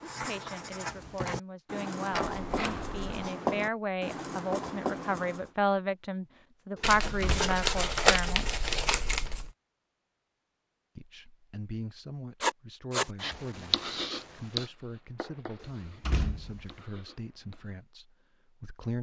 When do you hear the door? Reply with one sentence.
The door can be heard from 2.1 to 3.0 s, from 6.8 to 7.5 s and from 15.6 to 16.7 s.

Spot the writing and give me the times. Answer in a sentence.
You can hear the writing from 0.0 to 5.5 s and from 12.4 to 17.8 s.